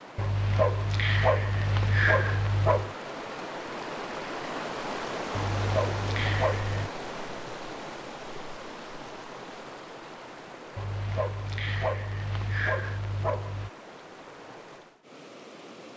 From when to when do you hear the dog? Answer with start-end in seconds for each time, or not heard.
0.1-3.0, 5.3-6.9, 10.8-13.7.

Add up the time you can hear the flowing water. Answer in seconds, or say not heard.
16 s.